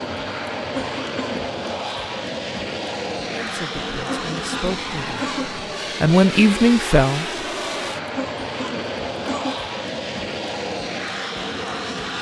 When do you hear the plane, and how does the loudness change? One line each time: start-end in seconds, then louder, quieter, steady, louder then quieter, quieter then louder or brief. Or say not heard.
0.0-12.1 steady.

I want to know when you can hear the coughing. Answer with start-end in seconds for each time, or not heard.
0.7-1.6, 4.0-5.5, 8.2-9.6.